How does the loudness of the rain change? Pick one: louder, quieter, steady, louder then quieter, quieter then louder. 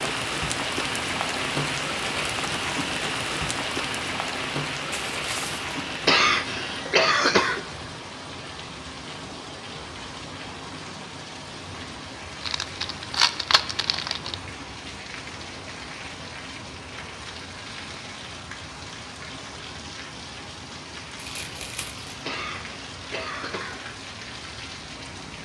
quieter.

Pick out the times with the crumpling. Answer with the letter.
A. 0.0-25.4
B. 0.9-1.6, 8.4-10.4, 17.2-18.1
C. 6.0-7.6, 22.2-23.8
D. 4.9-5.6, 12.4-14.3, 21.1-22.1
D.